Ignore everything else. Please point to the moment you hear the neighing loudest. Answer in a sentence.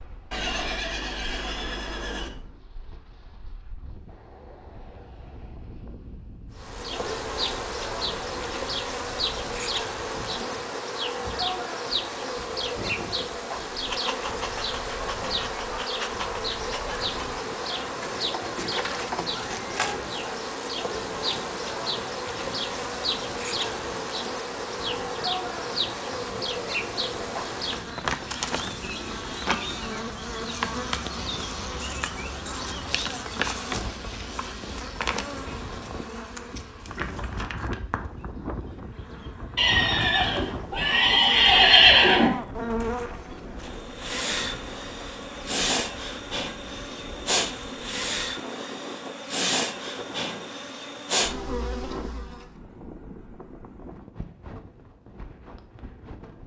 The loudest moment of the neighing is at 42 seconds.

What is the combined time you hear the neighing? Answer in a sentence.
You can hear the neighing for 5 seconds altogether.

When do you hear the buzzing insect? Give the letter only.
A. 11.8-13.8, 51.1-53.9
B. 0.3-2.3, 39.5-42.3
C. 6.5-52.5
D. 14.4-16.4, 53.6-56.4
C.